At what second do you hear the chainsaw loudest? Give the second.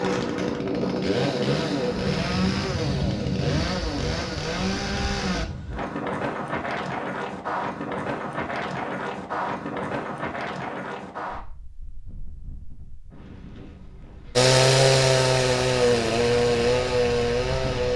15 s.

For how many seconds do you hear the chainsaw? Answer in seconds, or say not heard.
9 s.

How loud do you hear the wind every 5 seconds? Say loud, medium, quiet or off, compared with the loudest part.
loud, loud, medium, medium.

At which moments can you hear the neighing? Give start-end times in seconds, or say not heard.
not heard.